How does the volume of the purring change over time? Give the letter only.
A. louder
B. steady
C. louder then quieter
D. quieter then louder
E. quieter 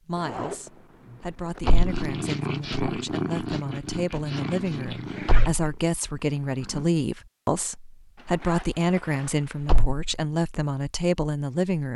E.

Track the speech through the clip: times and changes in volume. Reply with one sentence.
You can hear the speech from 0.1 to 11.9 s, getting louder.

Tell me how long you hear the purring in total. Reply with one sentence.
You can hear the purring for 5 seconds altogether.